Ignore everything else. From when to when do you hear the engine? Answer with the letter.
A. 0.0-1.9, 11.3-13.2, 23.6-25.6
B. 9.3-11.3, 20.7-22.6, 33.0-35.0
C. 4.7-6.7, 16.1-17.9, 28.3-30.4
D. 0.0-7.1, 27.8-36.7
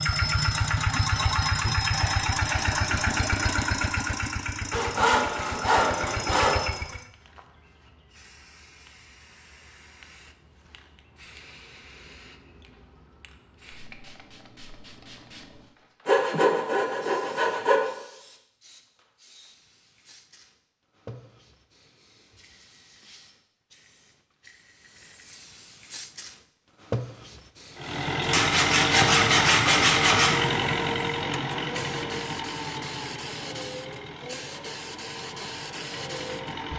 D.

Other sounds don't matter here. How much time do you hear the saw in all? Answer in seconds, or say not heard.
6 s.